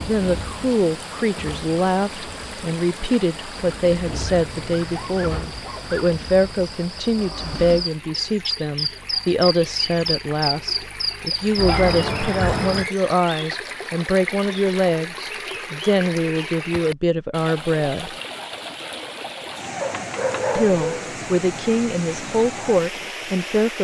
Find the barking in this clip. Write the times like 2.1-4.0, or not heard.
4.3-6.0, 11.7-12.9, 19.8-21.1.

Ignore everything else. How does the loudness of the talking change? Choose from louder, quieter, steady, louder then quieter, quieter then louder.
steady.